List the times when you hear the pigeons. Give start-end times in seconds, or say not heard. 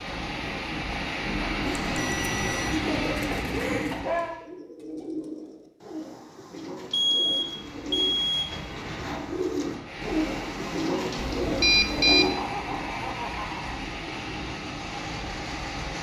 1.6-12.3.